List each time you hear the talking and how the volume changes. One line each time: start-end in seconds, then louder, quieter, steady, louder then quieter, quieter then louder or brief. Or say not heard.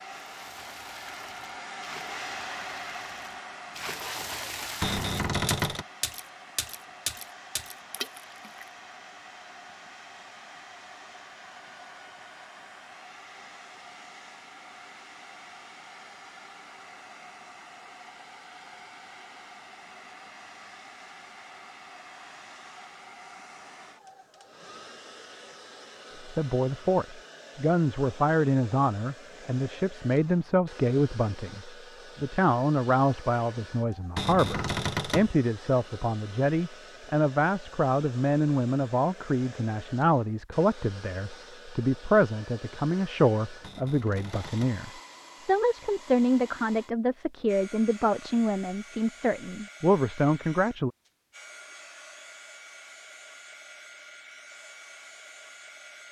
26.2-50.9 steady.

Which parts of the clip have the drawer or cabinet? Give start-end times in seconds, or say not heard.
4.8-5.8, 34.1-35.3, 43.6-44.8.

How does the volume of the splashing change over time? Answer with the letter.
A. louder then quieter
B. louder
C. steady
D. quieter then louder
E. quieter
B.